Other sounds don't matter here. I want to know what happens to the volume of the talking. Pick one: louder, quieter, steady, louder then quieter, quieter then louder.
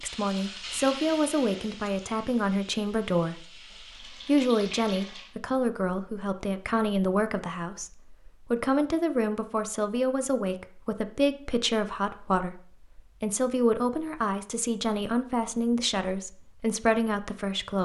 steady.